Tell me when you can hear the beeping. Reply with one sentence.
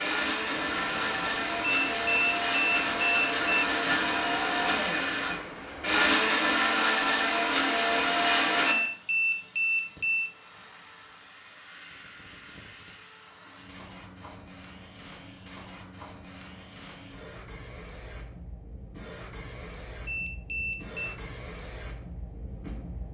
The beeping can be heard from 1.6 to 3.6 s, from 8.7 to 10.3 s and from 20.1 to 21.1 s.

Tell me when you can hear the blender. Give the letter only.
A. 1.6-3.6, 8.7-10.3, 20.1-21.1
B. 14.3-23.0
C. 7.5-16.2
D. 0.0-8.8
D.